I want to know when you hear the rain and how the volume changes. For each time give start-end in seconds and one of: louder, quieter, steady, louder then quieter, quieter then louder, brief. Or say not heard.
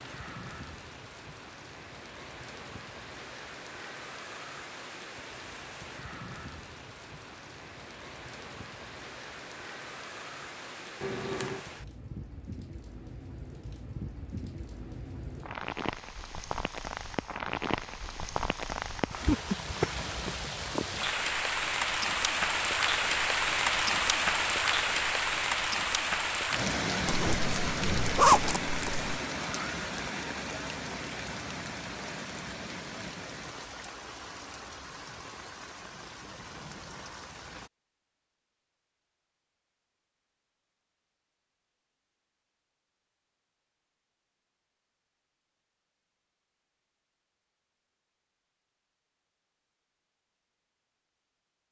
0.0-37.7 louder then quieter.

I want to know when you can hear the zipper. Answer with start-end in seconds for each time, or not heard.
11.0-11.7, 27.1-29.1.